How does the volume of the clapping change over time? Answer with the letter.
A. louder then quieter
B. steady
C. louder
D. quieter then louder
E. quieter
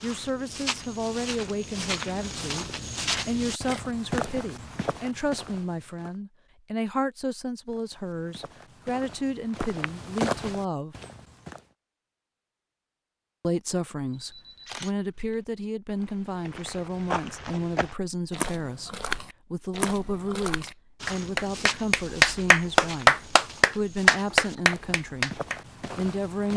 A.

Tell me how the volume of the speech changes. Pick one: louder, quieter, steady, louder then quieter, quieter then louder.
steady.